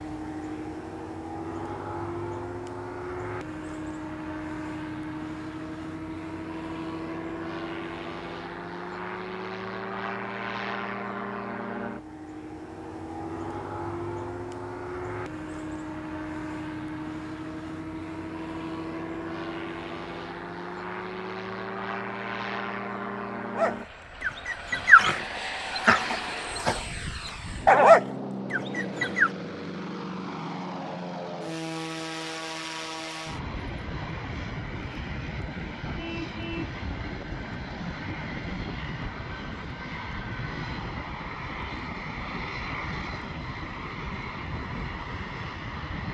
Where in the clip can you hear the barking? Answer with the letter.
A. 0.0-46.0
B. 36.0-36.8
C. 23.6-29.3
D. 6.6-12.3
C.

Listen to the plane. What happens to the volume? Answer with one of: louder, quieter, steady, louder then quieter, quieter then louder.
steady.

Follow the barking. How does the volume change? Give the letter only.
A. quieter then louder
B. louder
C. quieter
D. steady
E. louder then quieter
A.